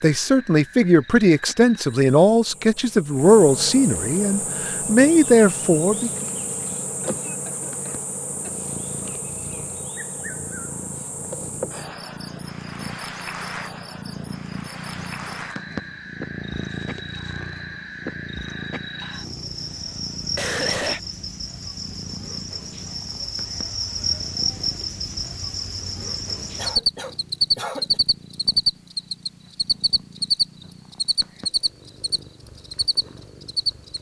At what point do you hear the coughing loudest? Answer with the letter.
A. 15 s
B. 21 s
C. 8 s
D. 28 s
B.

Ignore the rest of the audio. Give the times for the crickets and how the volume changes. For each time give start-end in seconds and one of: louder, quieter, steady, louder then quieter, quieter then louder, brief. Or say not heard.
0.0-33.9 louder.